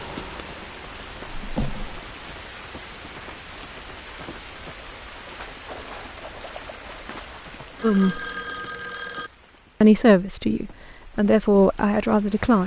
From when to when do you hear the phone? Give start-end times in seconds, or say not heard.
7.8-9.3.